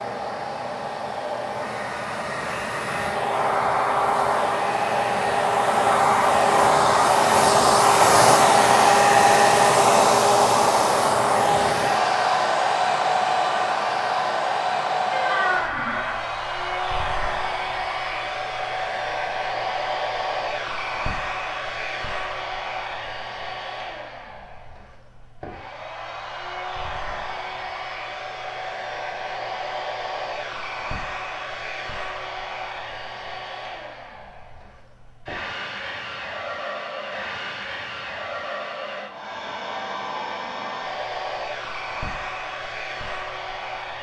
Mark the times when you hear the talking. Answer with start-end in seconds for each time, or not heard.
not heard.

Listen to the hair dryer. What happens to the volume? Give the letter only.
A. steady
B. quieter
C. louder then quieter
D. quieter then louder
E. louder
B.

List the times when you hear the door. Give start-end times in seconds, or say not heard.
15.1-16.2.